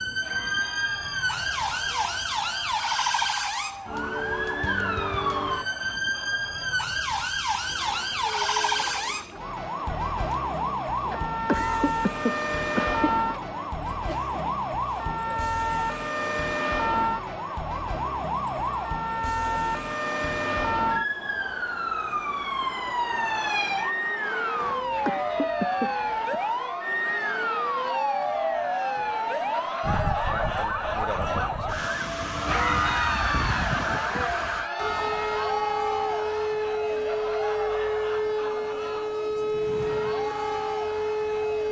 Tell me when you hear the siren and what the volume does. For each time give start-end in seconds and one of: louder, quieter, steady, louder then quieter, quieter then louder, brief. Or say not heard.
0.0-41.6 steady.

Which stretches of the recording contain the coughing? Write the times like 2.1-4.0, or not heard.
11.0-13.1, 24.6-26.4.